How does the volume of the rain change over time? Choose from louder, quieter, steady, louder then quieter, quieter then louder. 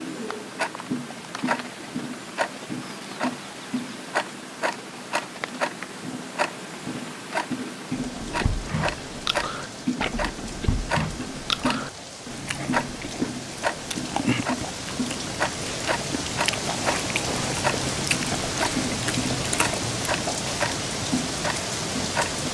louder.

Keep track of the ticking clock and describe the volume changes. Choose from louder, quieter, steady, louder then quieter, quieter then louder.
steady.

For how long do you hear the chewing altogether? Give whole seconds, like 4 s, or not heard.
12 s.